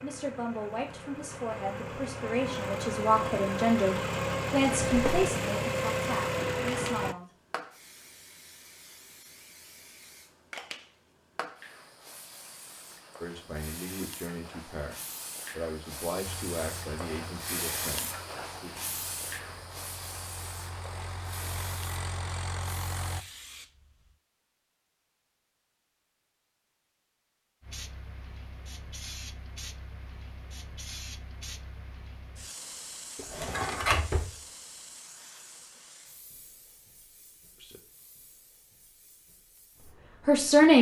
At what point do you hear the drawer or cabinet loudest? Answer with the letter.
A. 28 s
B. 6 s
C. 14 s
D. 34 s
D.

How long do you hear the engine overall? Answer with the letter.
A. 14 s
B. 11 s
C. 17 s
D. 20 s
A.